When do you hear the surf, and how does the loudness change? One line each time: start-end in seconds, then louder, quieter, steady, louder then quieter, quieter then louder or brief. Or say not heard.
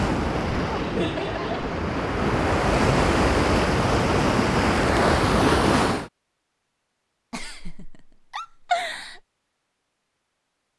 0.0-6.1 louder.